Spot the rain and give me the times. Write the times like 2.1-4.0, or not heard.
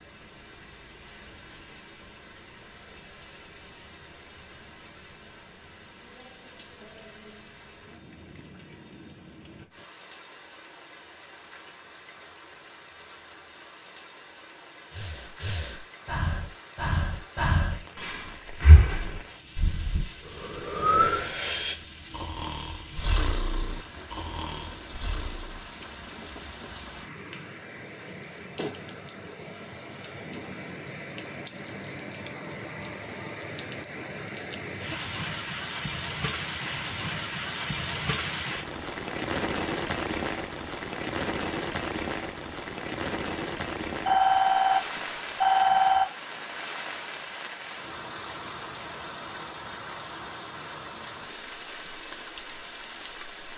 0.0-53.5.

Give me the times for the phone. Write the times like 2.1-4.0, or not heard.
44.0-46.0.